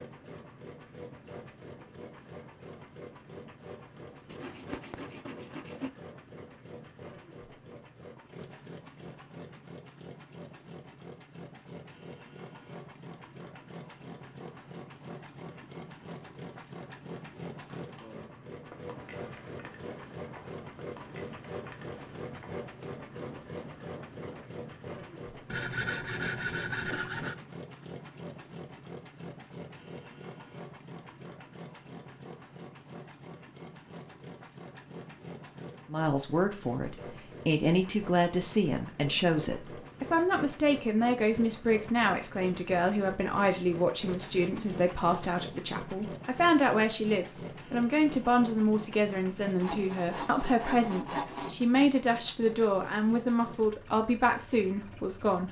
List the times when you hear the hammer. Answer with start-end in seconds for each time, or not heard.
17.8-24.5.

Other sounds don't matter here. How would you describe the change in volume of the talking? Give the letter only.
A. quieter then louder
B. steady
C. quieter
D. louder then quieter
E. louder
B.